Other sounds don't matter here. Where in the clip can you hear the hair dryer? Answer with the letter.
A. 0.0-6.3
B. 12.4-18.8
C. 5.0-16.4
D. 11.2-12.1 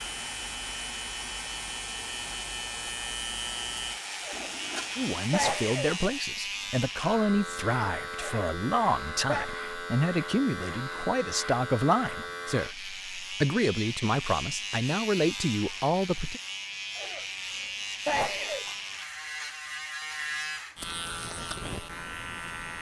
A.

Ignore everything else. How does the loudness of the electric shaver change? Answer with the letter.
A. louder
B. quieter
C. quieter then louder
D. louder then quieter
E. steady
E.